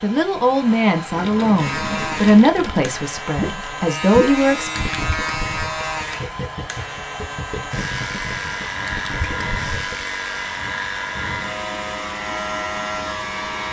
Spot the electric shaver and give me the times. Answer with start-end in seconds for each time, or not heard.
1.6-13.6.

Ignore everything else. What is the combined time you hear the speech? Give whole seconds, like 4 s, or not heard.
5 s.